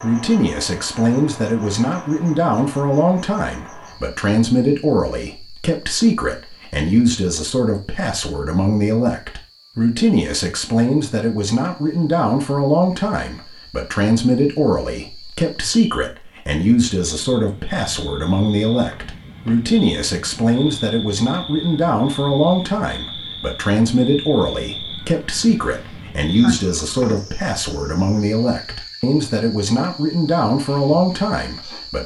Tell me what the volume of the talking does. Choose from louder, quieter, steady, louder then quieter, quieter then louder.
steady.